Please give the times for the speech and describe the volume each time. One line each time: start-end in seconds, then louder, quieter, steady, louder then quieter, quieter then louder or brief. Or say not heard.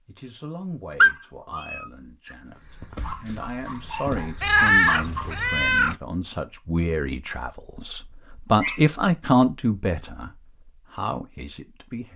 0.1-12.1 louder then quieter.